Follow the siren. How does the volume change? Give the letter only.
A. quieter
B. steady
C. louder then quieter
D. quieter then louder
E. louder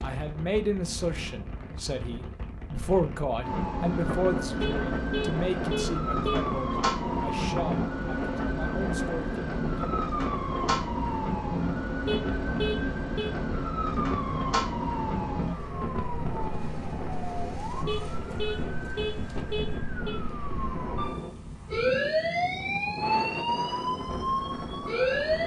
D.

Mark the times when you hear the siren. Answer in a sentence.
The siren can be heard from 3.4 to 25.4 s.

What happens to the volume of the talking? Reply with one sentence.
The volume of the talking goes down.